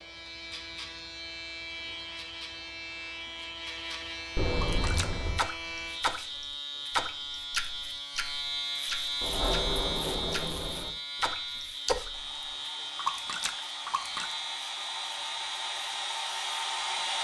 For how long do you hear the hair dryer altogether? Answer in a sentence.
The hair dryer can be heard for 5 seconds in total.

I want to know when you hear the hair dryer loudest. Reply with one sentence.
The loudest moment of the hair dryer is at 17 seconds.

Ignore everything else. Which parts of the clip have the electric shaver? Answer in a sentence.
The electric shaver can be heard from 0.0 to 17.1 s.